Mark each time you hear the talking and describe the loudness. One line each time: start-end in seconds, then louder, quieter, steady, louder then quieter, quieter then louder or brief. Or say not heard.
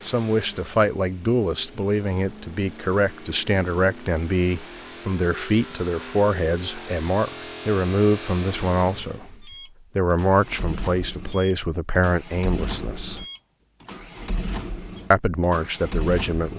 0.0-13.2 steady
15.1-16.5 brief.